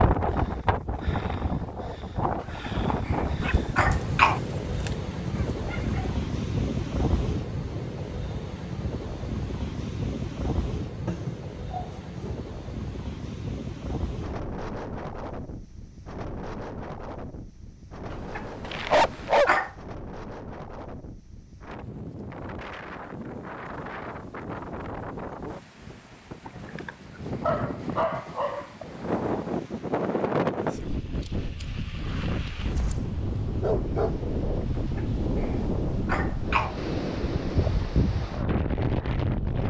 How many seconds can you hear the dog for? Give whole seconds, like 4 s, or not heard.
9 s.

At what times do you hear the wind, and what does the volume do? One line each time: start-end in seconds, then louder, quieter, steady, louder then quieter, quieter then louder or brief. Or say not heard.
0.0-39.6 quieter then louder.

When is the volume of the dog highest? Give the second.
19 s.